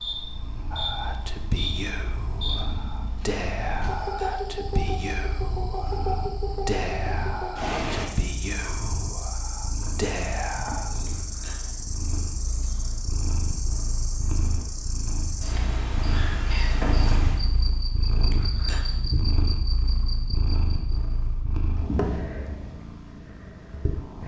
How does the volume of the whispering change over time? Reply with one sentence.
The loudness of the whispering stays about the same.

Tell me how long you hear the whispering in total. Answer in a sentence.
You can hear the whispering for 10 seconds altogether.